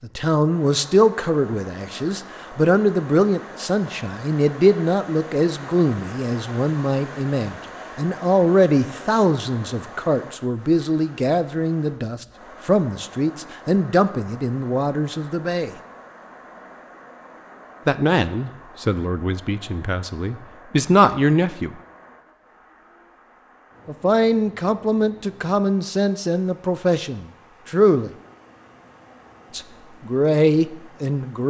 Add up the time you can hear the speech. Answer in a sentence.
The speech can be heard for 26 seconds in total.